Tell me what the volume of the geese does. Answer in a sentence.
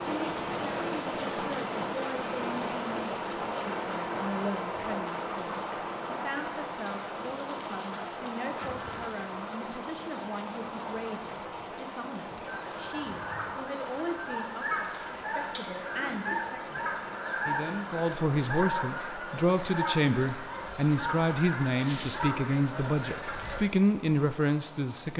The volume of the geese stays about the same.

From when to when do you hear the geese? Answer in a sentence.
You can hear the geese from 12.4 to 23.6 s.